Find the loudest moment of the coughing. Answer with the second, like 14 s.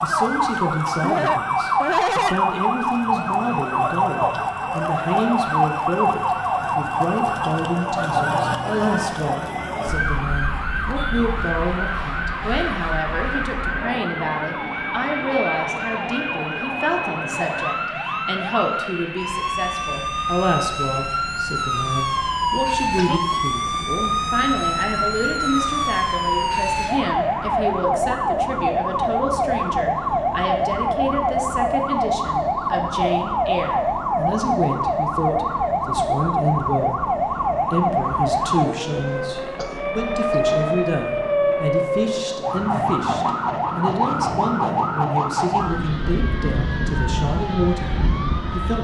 2 s.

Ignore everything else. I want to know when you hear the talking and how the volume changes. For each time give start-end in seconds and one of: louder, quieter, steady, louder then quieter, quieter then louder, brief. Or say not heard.
0.0-37.0 steady
37.7-48.7 steady.